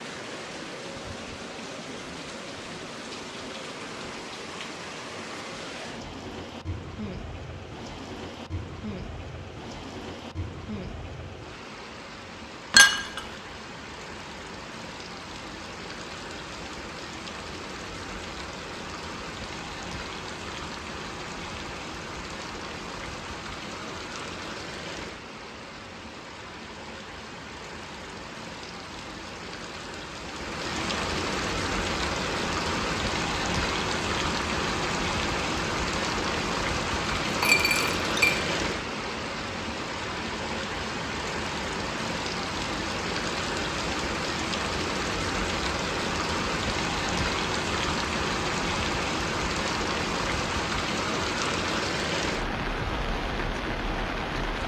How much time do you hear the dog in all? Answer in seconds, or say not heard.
not heard.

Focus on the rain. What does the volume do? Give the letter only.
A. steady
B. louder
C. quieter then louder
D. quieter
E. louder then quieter
B.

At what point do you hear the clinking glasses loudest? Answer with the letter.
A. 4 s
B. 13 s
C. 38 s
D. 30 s
B.